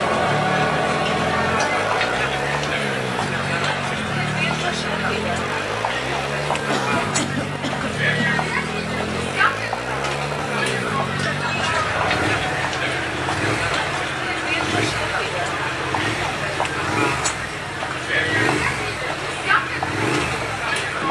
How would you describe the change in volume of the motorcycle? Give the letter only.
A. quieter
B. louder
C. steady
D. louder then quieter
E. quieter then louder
C.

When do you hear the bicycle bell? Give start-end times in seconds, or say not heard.
not heard.